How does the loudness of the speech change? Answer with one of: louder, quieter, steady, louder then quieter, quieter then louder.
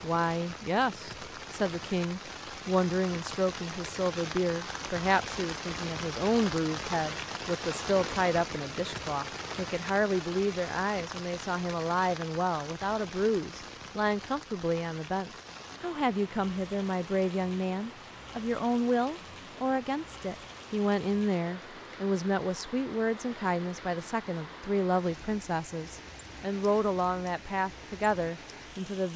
steady.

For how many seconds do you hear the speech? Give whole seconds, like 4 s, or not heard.
29 s.